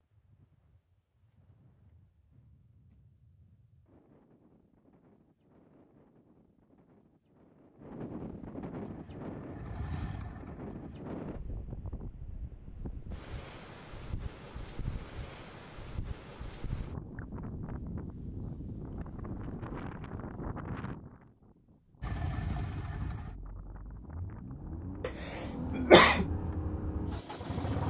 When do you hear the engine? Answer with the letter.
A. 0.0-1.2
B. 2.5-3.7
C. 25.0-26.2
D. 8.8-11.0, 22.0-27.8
D.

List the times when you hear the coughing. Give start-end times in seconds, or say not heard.
25.0-26.2.